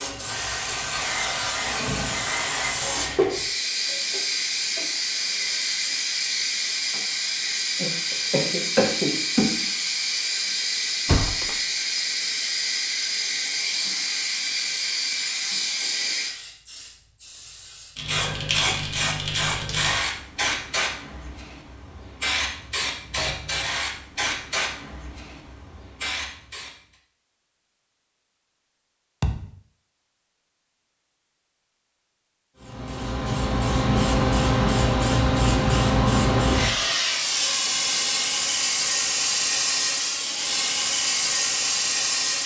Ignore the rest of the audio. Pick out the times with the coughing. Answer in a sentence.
You can hear the coughing from 7.8 to 9.6 s.